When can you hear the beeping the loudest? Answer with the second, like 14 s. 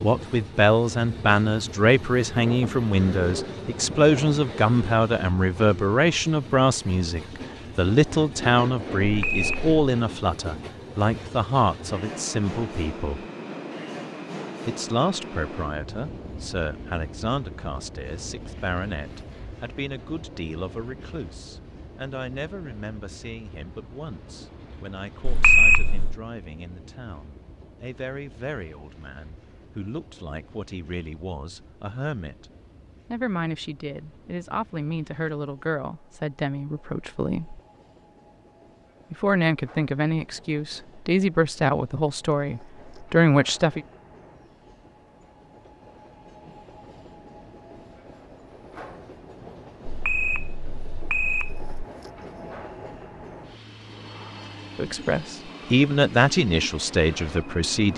26 s.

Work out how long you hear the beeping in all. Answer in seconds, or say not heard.
4 s.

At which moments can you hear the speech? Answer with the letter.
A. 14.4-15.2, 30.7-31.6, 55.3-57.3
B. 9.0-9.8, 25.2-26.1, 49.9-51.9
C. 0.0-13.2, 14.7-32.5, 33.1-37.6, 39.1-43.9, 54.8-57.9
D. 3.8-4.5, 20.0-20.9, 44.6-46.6
C.